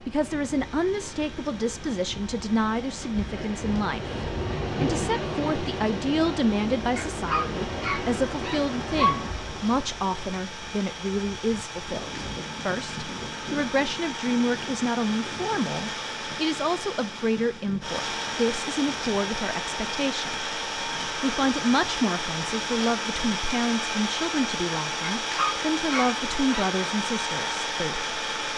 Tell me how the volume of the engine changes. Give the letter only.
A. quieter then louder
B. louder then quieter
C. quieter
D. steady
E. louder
E.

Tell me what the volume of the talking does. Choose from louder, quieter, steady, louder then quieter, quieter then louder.
steady.